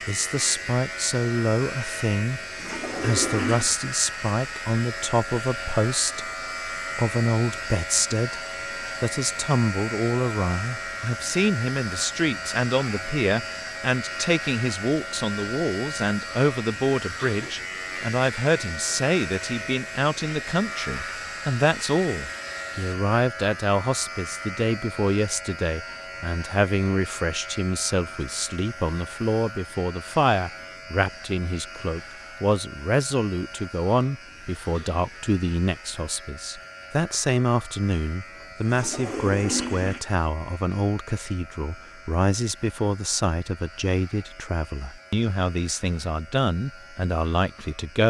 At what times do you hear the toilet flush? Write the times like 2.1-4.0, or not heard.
2.3-3.7, 38.4-40.0.